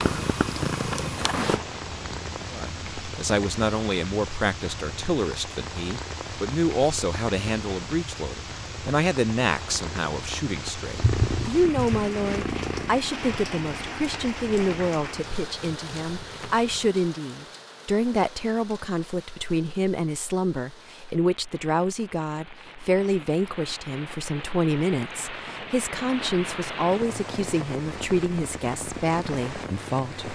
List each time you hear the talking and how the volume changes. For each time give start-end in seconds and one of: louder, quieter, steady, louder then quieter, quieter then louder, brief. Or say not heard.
2.5-30.3 steady.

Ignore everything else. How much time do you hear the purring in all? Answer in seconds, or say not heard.
9 s.